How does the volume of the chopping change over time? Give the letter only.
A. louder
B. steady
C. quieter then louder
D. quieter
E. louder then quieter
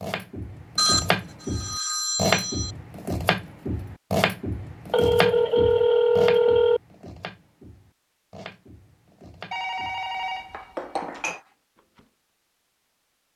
D.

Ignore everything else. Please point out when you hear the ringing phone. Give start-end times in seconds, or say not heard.
0.8-2.7, 4.9-6.8, 9.5-11.4.